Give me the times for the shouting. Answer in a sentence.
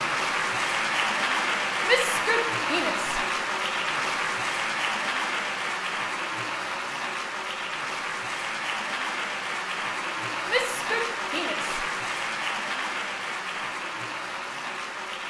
You can hear the shouting from 1.9 to 3.2 s and from 10.4 to 11.8 s.